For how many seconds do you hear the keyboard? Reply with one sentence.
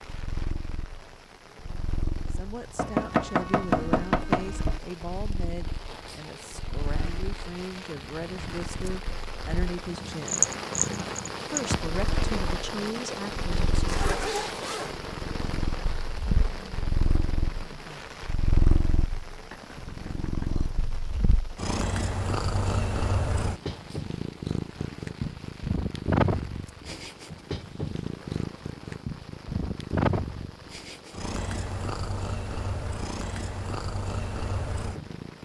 You can't hear the keyboard here.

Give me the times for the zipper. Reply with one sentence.
The zipper can be heard from 13.7 to 14.9 s.